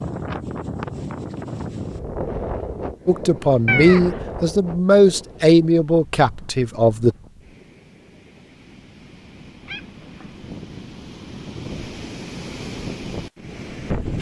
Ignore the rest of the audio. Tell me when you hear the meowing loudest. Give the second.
4 s.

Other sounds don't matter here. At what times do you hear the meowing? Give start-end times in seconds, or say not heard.
3.6-4.2, 9.7-10.3.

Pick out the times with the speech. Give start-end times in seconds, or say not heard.
3.0-7.2.